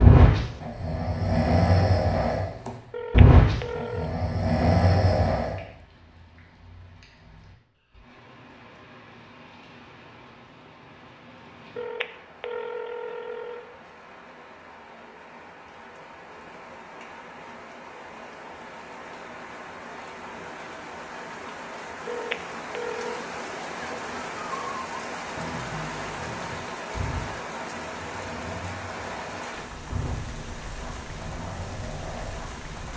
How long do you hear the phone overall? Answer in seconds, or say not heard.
4 s.